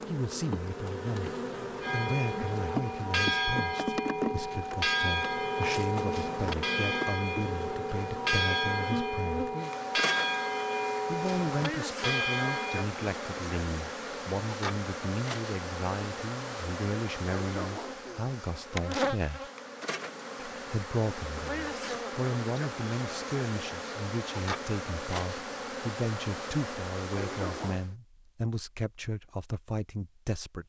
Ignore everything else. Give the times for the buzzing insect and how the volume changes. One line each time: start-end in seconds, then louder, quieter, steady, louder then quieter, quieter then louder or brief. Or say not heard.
0.0-27.9 steady.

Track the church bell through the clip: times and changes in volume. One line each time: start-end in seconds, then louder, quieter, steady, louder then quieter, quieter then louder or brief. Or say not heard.
1.8-12.9 steady.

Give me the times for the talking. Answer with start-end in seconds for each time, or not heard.
0.1-9.5, 11.1-19.5, 20.6-30.6.